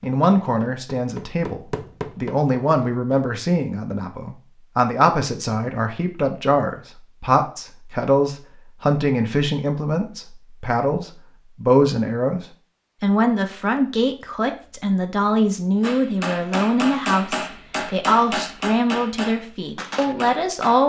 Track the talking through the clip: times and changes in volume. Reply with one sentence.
You can hear the talking from 0.0 to 20.8 s, at a steady volume.